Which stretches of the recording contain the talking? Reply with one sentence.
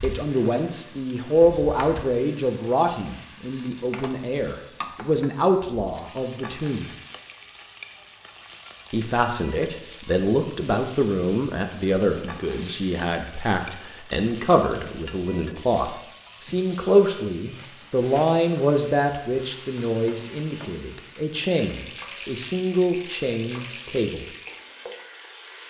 You can hear the talking from 0.0 to 6.9 s and from 8.9 to 24.2 s.